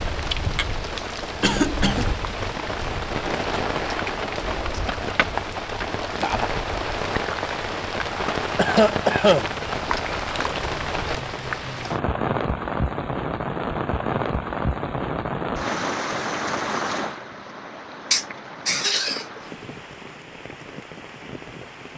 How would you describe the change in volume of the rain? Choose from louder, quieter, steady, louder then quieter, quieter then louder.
quieter.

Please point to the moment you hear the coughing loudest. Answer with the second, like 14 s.
9 s.